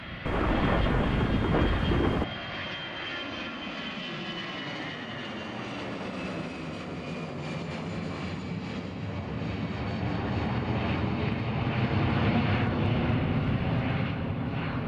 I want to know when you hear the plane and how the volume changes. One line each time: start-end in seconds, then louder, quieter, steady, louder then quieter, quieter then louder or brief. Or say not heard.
0.0-14.8 louder.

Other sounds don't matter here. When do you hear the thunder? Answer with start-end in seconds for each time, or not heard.
0.2-2.2.